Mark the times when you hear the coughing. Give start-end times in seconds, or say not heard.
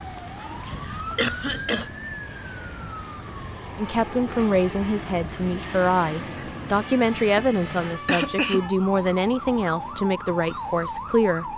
0.7-1.9, 7.3-8.7.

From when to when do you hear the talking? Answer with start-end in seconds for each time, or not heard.
3.8-11.5.